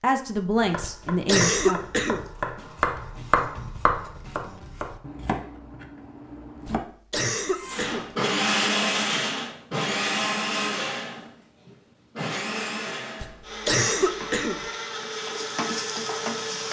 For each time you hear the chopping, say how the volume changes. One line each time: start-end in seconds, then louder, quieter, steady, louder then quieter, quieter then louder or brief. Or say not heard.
0.6-6.8 louder then quieter.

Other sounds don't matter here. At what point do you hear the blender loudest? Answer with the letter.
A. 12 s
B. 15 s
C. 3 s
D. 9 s
D.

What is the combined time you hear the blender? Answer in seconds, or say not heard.
9 s.